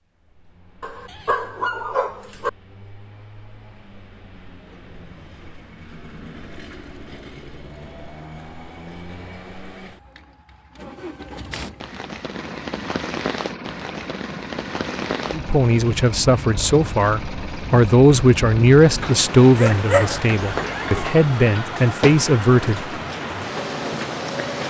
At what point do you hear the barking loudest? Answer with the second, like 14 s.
20 s.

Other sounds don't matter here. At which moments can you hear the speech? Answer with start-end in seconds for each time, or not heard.
15.3-22.9.